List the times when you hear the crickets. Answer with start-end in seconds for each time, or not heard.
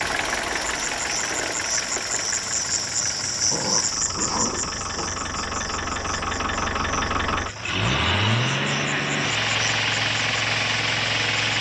0.0-11.5.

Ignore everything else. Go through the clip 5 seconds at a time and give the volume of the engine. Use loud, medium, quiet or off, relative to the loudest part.
medium, loud, loud.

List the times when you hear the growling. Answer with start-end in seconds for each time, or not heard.
3.5-5.2.